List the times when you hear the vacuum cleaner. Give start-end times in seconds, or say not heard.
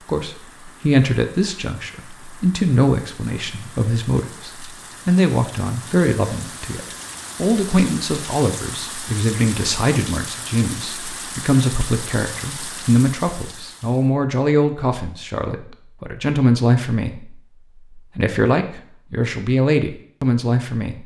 not heard.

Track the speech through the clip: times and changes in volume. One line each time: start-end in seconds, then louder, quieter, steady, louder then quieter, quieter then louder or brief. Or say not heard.
0.1-21.0 steady.